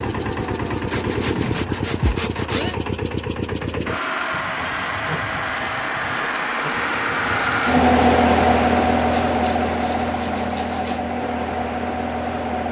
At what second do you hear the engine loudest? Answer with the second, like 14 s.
8 s.